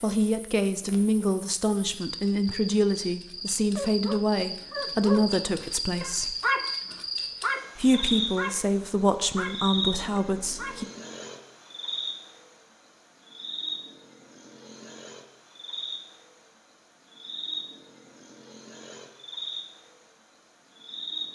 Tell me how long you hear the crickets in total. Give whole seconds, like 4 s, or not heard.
21 s.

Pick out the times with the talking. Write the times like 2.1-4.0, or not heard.
0.0-6.3, 7.8-10.8.